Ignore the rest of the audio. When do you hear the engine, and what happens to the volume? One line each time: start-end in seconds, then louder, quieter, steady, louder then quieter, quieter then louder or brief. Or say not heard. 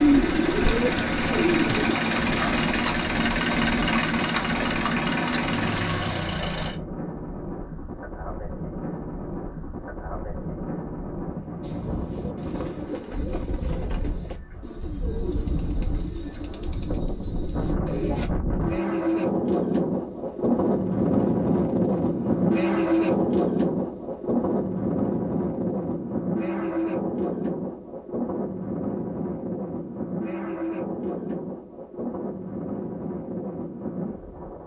0.0-6.8 steady.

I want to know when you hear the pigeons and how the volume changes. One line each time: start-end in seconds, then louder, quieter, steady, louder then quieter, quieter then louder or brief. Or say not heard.
0.0-1.9 brief
11.6-18.3 steady.